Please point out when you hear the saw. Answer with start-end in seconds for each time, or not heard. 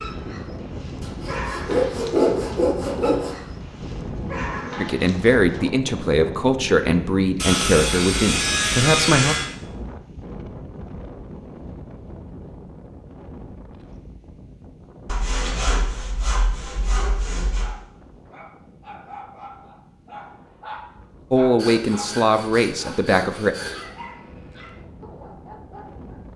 1.0-3.4, 7.3-9.5, 15.1-17.7, 21.6-23.9.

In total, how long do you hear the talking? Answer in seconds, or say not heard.
7 s.